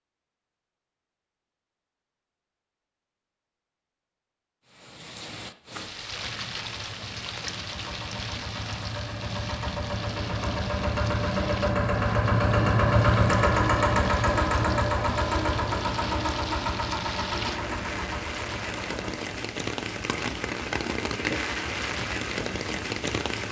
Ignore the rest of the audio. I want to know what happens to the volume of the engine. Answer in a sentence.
The volume of the engine goes up, then down.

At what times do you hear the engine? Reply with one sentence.
You can hear the engine from 6.0 to 23.4 s.